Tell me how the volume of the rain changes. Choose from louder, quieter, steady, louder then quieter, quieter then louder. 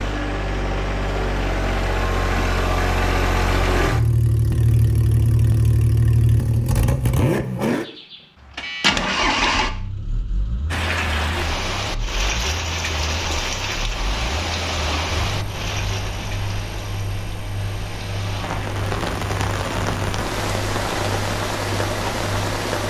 quieter then louder.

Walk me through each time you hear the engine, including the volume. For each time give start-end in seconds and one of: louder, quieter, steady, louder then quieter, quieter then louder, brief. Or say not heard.
0.0-22.8 quieter.